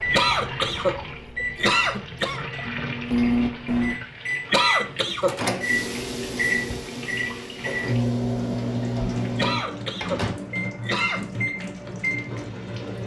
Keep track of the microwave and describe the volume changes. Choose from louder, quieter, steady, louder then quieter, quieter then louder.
louder then quieter.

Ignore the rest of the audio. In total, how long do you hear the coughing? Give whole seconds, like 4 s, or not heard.
5 s.